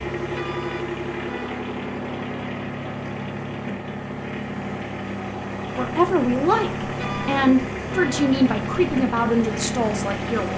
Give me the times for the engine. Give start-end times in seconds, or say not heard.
0.0-10.5.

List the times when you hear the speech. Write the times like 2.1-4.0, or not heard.
5.8-10.5.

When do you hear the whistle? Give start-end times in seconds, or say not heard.
not heard.